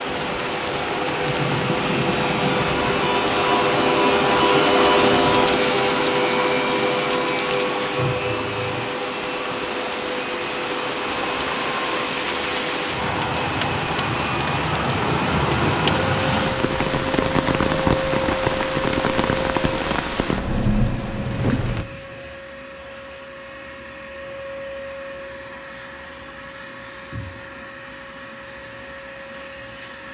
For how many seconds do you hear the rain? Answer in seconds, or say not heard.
22 s.